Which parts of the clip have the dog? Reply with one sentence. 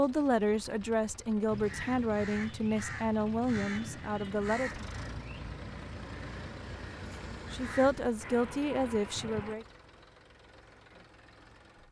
The dog can't be heard in this clip.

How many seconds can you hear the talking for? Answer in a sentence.
You can hear the talking for 7 seconds altogether.